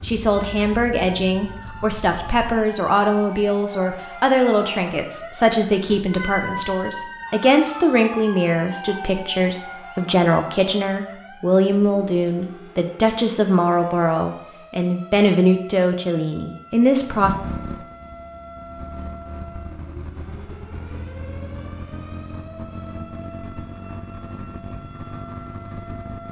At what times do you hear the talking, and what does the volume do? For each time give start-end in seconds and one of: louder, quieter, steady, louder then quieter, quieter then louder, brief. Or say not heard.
0.0-17.4 steady.